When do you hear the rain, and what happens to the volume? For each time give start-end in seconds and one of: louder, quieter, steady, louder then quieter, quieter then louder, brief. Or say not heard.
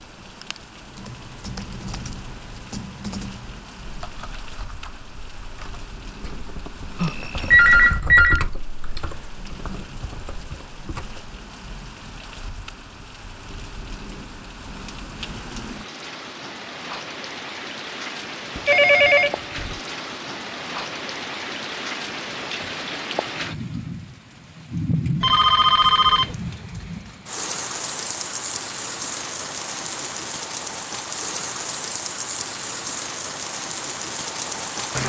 0.0-35.0 louder.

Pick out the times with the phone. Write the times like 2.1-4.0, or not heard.
7.0-8.4, 18.6-19.8, 25.2-26.4.